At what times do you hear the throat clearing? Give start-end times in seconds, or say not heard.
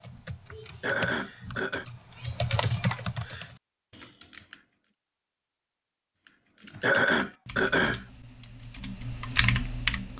0.8-1.9, 6.8-8.0.